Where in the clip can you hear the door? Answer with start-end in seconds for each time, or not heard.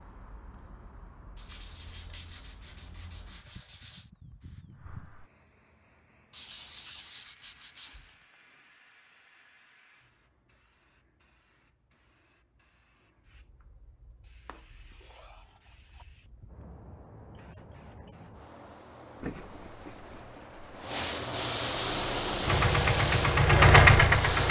not heard.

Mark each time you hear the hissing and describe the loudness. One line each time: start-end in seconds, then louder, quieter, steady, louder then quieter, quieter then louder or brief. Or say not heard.
0.0-24.4 quieter then louder.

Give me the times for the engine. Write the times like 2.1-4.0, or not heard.
21.7-24.4.